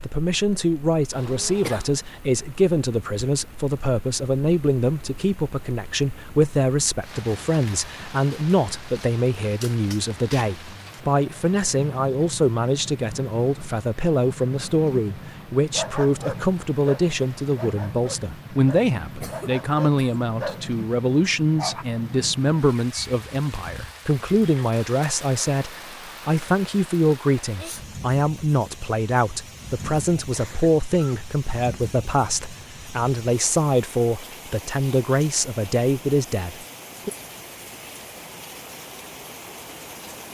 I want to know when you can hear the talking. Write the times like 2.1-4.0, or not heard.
0.0-37.1.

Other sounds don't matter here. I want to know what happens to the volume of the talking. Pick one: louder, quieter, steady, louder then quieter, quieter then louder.
steady.